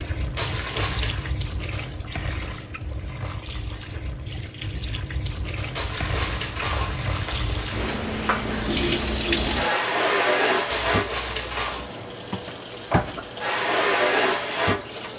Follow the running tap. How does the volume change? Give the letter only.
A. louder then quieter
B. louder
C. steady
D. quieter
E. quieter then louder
B.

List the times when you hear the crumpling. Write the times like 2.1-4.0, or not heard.
0.3-1.3, 5.8-8.1, 10.7-11.9.